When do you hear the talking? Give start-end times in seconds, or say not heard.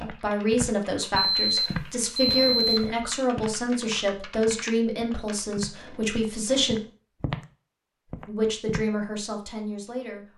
0.0-6.8, 8.2-10.3.